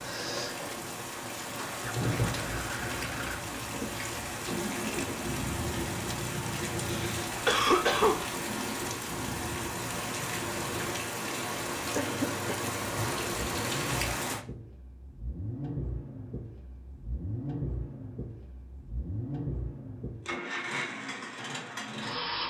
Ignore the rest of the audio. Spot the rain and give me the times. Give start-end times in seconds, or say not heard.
0.0-14.4.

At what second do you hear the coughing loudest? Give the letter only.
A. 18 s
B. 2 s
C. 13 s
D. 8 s
D.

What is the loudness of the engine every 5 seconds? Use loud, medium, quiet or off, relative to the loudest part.
loud, loud, medium, loud, loud.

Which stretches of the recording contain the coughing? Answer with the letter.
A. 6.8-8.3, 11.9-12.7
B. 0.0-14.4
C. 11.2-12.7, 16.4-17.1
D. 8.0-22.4
A.